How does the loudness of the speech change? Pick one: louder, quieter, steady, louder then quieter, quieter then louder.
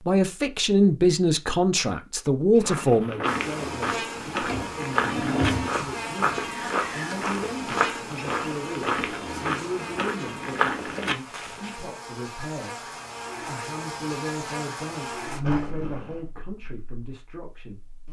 quieter.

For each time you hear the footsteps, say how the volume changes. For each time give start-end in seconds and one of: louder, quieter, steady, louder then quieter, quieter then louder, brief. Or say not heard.
2.5-11.8 steady.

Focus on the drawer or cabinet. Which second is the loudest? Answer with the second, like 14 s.
5 s.